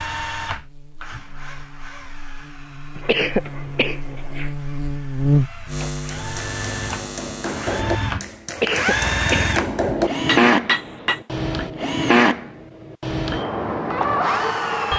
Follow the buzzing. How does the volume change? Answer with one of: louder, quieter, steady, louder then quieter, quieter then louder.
louder then quieter.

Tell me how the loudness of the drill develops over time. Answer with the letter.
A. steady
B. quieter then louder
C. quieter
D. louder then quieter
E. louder
B.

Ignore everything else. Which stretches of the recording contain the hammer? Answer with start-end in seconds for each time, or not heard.
5.8-11.2.